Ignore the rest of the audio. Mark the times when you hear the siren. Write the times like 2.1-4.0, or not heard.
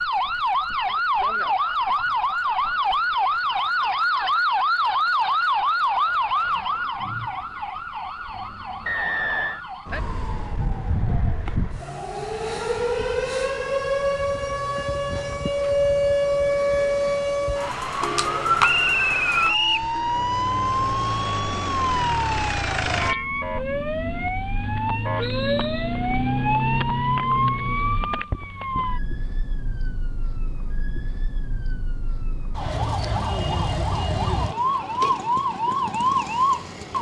0.0-36.9.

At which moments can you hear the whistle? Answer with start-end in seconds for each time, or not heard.
8.8-9.6, 18.6-19.9, 25.2-25.9.